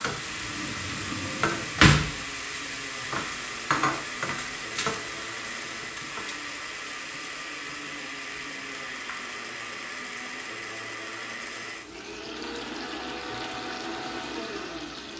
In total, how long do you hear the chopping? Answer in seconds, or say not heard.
not heard.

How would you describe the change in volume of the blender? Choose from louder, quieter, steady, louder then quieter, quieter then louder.
steady.